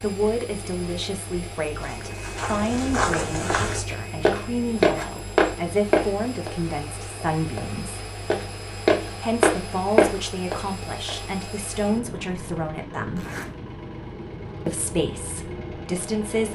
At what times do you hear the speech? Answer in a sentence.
The speech can be heard from 0.0 to 8.1 s, from 9.2 to 13.2 s and from 14.7 to 16.5 s.